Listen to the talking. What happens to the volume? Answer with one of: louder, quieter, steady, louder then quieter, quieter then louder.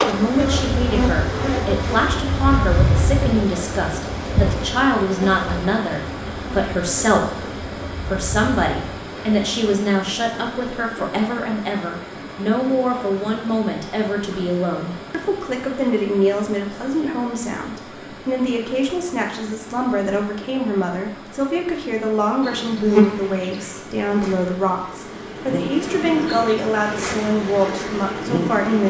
steady.